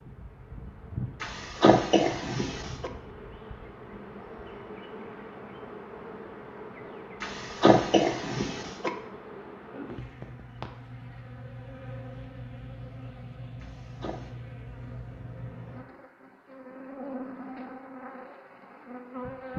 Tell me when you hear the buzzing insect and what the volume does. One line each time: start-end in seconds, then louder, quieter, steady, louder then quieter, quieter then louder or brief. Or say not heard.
0.0-19.5 steady.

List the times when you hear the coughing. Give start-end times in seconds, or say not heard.
1.2-2.9, 7.2-8.9, 13.6-14.3.